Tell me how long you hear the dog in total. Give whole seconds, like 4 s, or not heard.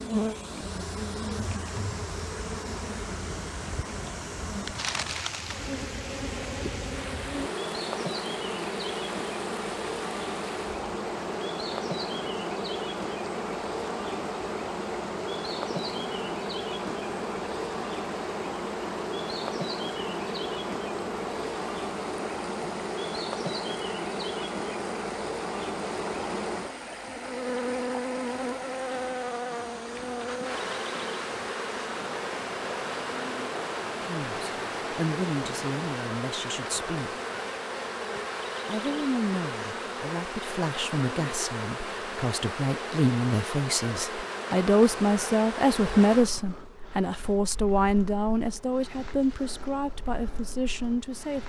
not heard.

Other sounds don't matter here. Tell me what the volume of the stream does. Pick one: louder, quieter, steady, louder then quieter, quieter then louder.
steady.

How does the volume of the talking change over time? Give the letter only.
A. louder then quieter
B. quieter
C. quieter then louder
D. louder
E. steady
A.